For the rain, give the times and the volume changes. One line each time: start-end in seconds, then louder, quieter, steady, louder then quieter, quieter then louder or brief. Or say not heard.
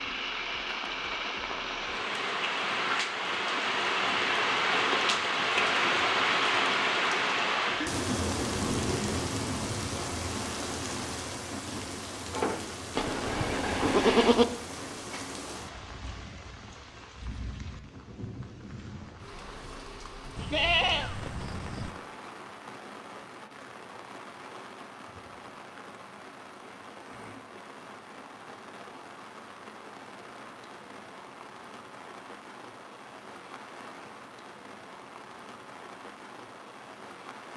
0.0-37.5 quieter.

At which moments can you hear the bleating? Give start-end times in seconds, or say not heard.
12.9-14.4, 20.4-21.9.